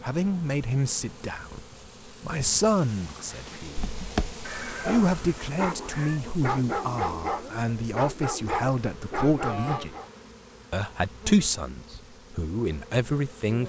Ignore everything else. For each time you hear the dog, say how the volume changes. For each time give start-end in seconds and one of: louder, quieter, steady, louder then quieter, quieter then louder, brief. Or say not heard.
3.0-10.1 steady.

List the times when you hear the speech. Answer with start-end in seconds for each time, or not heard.
0.0-1.6, 2.2-3.9, 4.8-9.9, 10.7-13.6.